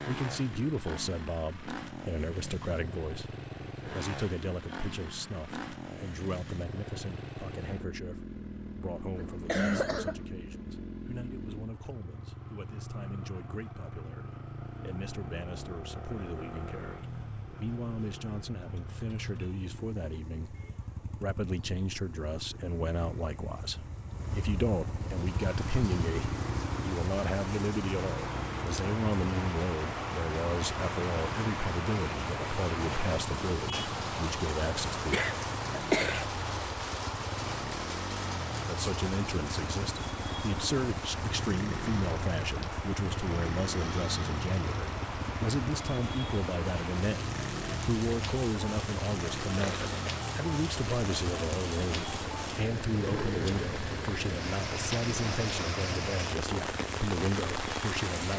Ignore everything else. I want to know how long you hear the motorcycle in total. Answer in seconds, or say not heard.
58 s.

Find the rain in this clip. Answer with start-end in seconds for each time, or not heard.
24.9-58.3.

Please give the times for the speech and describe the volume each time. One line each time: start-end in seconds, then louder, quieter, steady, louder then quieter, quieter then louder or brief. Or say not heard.
0.1-35.2 quieter then louder
38.6-58.3 steady.